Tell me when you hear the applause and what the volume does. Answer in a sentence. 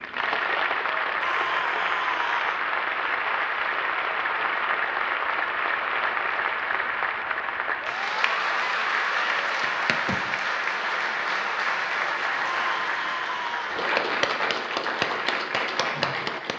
The applause can be heard from 0.0 to 16.5 s, at a steady volume.